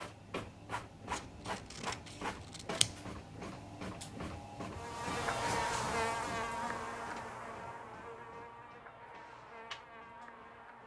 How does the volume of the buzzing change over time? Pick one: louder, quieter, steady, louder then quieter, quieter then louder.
quieter.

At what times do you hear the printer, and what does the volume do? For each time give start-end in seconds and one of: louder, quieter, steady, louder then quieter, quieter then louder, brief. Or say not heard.
0.0-10.8 quieter.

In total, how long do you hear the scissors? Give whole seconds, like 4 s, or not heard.
2 s.